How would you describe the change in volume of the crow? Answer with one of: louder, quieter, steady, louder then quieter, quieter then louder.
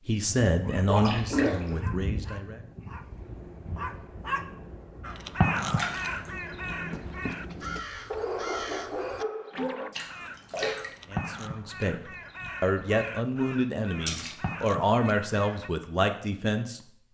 quieter.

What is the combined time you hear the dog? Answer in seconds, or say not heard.
10 s.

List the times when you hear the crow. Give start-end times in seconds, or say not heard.
5.0-15.7.